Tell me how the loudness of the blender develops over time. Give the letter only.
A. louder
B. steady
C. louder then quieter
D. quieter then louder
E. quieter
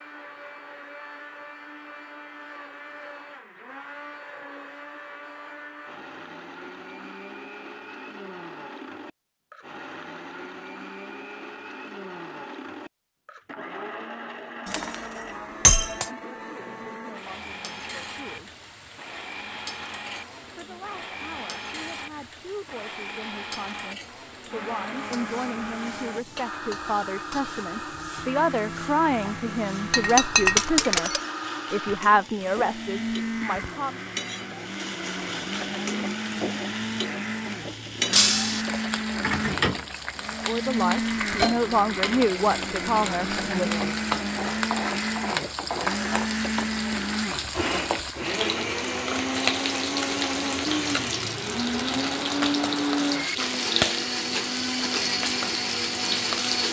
A.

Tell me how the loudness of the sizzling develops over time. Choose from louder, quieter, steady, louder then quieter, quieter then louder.
louder.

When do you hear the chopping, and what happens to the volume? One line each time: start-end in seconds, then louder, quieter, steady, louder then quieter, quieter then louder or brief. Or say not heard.
not heard.